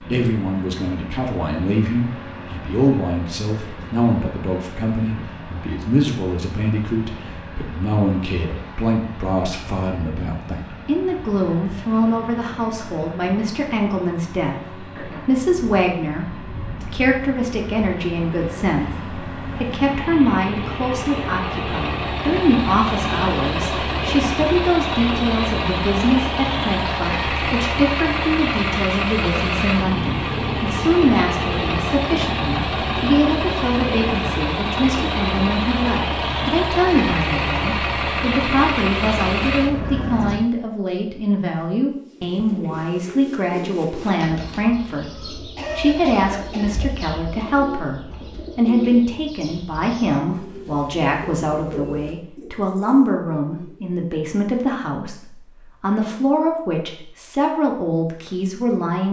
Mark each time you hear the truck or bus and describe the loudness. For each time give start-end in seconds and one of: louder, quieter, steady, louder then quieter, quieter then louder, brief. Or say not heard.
0.0-40.4 louder.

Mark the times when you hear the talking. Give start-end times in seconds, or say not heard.
0.1-45.0, 45.8-59.0.